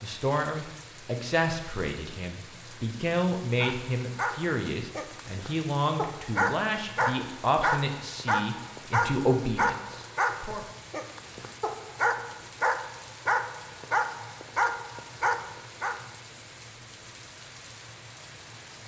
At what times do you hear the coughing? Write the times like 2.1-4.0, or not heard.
not heard.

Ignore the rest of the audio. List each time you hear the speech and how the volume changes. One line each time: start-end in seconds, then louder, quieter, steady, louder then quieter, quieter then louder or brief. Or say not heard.
0.0-10.6 steady.